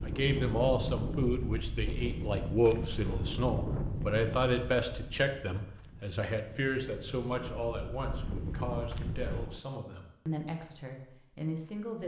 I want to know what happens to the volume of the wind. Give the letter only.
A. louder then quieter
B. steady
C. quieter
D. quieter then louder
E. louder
D.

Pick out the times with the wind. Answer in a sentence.
The wind can be heard from 0.0 to 9.6 s.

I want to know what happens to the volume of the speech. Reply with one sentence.
The volume of the speech goes down.